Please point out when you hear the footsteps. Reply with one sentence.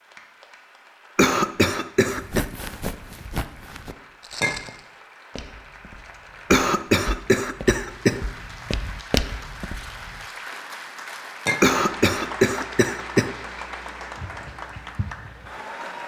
You can hear the footsteps from 2.0 to 10.2 s.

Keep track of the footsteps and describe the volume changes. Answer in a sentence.
The volume of the footsteps goes down, then up.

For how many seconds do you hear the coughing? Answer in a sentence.
You can hear the coughing for 5 seconds altogether.